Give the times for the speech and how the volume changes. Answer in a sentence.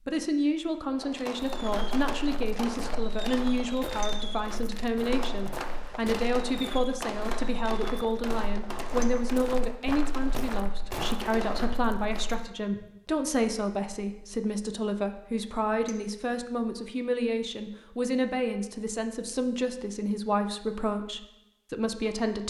You can hear the speech from 0.1 to 22.4 s, at a steady volume.